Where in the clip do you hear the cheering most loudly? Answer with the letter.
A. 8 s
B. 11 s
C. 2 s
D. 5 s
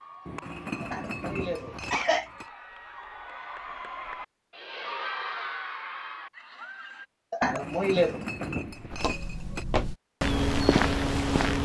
D.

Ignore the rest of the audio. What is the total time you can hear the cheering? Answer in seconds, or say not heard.
7 s.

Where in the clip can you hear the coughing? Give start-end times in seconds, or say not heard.
0.8-2.3, 7.3-8.2.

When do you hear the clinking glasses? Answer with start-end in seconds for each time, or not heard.
0.2-2.5, 7.4-9.7.